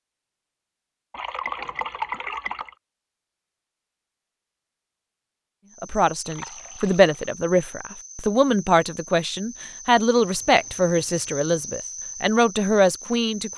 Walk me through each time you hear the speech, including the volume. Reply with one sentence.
You can hear the speech from 5.8 to 13.5 s, at a steady volume.